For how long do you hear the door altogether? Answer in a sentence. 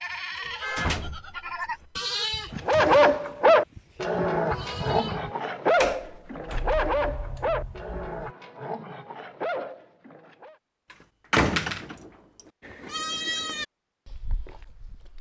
You can hear the door for 5 seconds altogether.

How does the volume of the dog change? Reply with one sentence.
The loudness of the dog goes down.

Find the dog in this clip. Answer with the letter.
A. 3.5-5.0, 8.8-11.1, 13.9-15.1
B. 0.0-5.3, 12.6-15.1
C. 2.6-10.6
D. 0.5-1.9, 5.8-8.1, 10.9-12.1
C.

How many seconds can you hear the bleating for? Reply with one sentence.
You can hear the bleating for 8 seconds altogether.